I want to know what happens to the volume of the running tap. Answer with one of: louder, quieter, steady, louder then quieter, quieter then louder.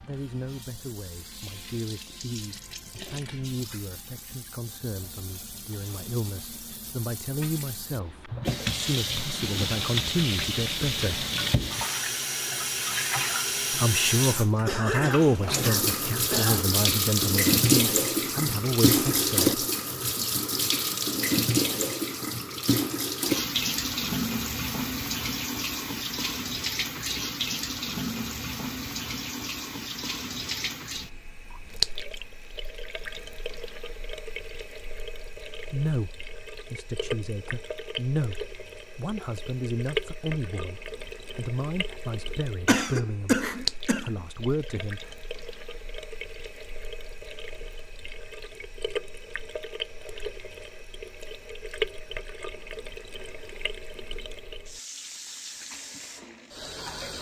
louder then quieter.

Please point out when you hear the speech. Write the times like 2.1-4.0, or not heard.
0.0-11.2, 13.7-19.6, 35.6-43.4, 44.0-45.1.